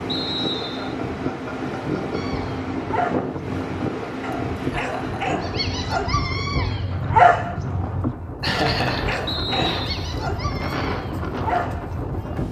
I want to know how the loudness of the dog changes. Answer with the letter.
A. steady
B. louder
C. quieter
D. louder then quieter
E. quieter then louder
D.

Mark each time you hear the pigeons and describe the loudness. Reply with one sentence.
The pigeons can't be heard in this clip.